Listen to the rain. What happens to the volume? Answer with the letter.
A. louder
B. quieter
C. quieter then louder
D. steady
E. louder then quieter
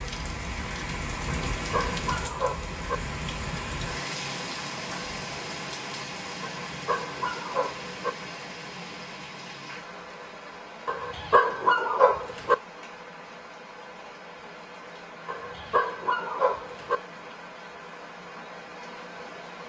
B.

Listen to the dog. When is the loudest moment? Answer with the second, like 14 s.
12 s.